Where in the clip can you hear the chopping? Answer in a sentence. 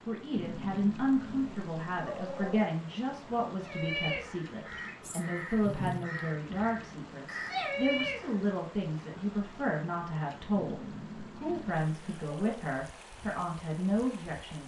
You can't hear the chopping here.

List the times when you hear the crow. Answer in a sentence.
You can hear the crow from 3.6 to 8.3 s.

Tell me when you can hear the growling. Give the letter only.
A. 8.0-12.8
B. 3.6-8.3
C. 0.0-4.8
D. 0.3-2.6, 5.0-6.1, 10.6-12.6
D.